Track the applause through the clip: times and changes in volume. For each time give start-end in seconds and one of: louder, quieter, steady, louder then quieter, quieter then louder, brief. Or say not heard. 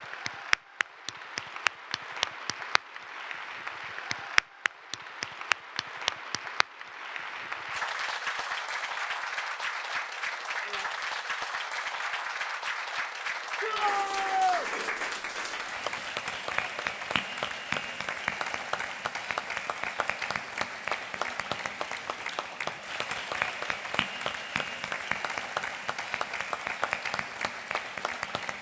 0.0-28.5 steady.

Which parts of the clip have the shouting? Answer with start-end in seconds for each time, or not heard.
13.6-14.7.